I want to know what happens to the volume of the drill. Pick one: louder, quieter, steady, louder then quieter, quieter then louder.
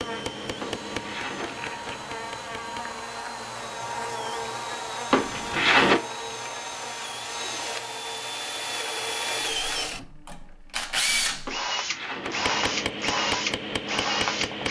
louder.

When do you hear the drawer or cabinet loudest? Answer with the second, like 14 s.
6 s.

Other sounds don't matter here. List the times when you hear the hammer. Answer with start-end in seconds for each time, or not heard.
0.0-3.0, 12.2-14.6.